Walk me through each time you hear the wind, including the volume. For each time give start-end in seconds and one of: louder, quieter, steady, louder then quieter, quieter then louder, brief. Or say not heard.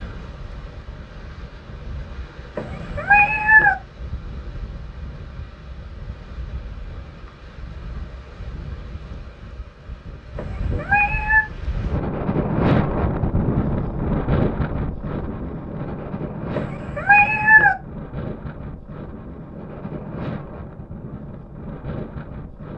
0.0-22.7 louder then quieter.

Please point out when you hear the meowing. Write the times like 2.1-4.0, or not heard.
2.5-3.8, 10.3-11.4, 16.6-17.8.